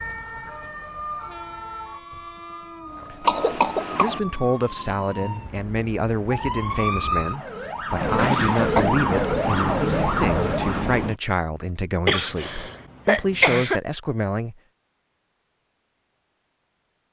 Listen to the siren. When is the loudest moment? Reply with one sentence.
The volume of the siren peaks at 9 seconds.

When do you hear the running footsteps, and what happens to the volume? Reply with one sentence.
The running footsteps can't be heard in this clip.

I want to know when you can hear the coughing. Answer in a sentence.
You can hear the coughing from 3.2 to 4.2 s, from 8.2 to 8.8 s and from 12.1 to 13.8 s.